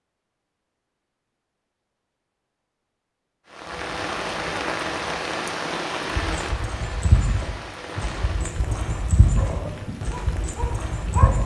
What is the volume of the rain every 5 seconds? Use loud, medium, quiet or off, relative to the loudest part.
loud, loud, medium.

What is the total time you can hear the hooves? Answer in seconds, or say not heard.
5 s.